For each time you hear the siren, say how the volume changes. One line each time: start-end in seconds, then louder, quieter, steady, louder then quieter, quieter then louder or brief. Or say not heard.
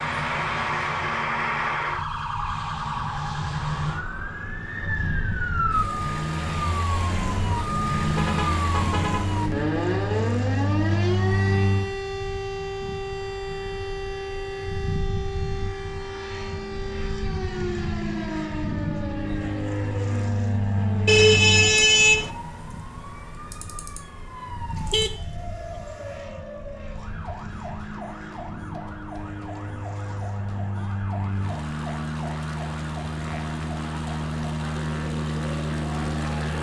0.0-36.5 quieter.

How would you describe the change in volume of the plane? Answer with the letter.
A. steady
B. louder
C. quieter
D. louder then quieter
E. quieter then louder
E.